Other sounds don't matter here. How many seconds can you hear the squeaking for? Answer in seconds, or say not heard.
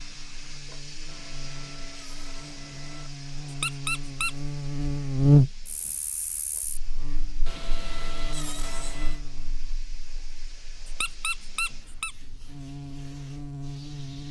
2 s.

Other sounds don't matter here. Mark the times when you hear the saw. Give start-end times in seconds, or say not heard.
1.1-3.1, 7.5-9.2.